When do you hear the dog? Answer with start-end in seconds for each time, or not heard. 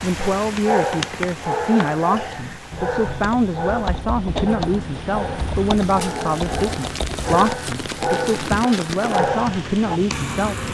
0.2-10.0.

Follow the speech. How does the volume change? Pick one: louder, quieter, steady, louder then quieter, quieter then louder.
steady.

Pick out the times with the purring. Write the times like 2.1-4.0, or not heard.
not heard.